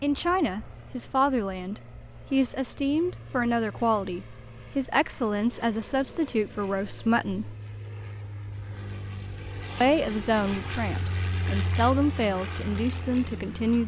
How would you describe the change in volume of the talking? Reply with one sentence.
The loudness of the talking stays about the same.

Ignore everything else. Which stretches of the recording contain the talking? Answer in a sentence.
You can hear the talking from 0.0 to 7.5 s and from 9.8 to 13.8 s.